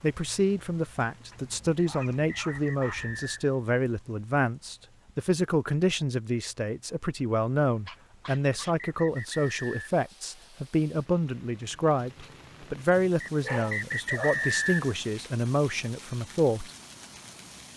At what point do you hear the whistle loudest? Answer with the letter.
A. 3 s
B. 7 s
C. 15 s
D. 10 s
C.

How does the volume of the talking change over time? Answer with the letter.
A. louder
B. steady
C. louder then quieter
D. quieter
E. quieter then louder
B.